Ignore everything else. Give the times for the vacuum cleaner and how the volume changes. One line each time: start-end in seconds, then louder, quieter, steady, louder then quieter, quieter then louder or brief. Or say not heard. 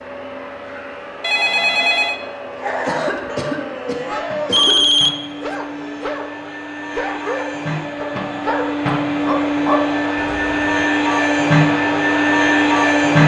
0.0-13.2 louder.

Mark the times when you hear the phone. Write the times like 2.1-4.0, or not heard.
1.2-2.1, 4.5-5.5, 10.2-10.8.